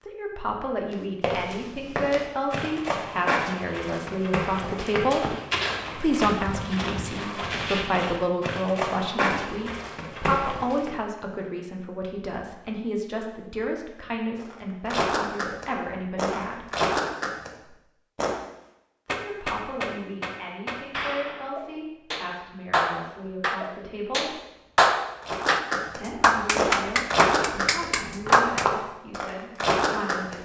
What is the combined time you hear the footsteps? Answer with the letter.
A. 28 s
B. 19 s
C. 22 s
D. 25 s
B.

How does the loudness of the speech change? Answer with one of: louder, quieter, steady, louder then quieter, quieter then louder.
quieter.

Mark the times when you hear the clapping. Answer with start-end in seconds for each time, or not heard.
19.1-28.6.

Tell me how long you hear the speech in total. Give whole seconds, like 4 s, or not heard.
26 s.